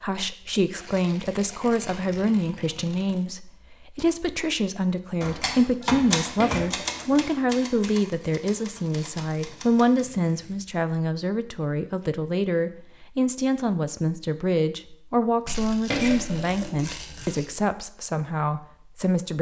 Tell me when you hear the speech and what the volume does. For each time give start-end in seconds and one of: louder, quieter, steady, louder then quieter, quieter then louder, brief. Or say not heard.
0.0-19.3 steady.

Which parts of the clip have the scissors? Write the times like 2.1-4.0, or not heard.
6.3-8.1, 15.9-16.9.